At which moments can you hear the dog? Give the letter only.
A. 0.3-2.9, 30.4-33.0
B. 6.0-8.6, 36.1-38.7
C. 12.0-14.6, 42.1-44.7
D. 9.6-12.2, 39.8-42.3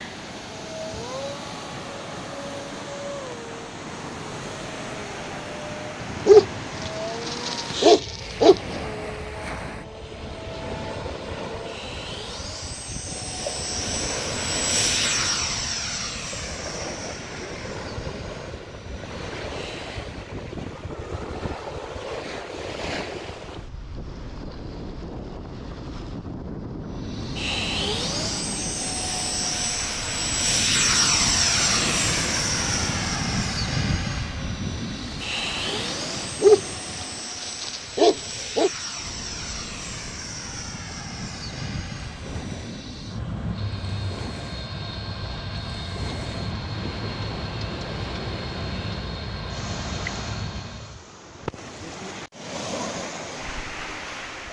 B.